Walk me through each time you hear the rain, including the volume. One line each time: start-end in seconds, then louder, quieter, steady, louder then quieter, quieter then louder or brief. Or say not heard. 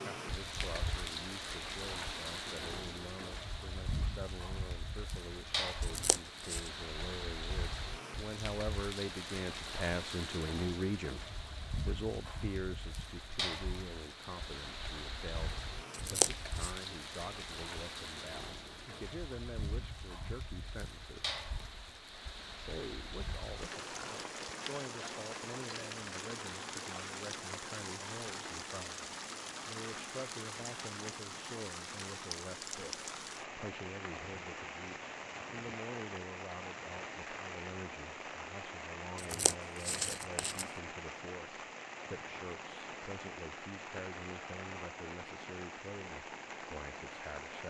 0.0-47.6 steady.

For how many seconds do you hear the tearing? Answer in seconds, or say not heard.
3 s.